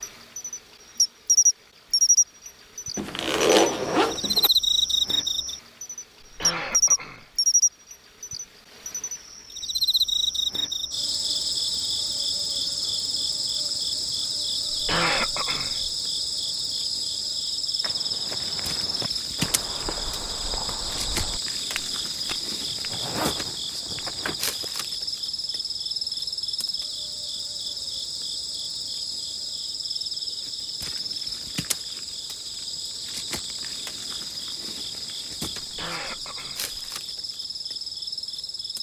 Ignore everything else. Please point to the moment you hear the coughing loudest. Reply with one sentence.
The loudest moment of the coughing is at 15 seconds.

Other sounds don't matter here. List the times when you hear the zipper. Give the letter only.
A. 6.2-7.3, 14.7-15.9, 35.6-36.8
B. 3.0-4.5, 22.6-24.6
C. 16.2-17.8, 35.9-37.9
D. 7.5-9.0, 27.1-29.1
B.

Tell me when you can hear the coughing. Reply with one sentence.
You can hear the coughing from 6.2 to 7.3 s, from 14.7 to 15.9 s and from 35.6 to 36.8 s.